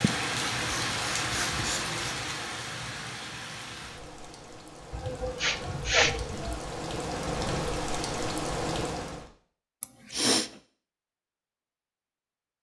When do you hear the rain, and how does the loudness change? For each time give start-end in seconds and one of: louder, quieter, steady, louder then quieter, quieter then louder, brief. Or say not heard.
0.0-9.3 quieter then louder.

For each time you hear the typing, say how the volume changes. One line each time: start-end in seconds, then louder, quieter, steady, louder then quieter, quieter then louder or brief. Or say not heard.
not heard.